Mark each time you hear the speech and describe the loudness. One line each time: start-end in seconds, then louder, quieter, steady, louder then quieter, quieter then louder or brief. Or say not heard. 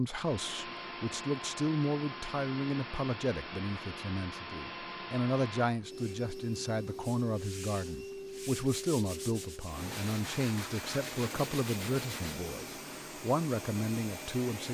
0.0-14.6 steady.